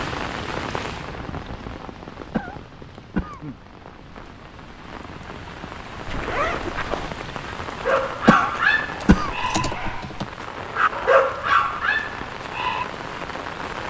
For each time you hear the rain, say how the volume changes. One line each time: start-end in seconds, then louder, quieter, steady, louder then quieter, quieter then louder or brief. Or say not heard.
0.0-13.8 quieter then louder.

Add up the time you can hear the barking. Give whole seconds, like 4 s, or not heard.
5 s.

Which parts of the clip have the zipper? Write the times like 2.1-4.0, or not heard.
6.0-7.1.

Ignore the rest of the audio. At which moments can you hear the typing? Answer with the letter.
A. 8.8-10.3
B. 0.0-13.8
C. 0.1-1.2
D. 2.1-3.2
A.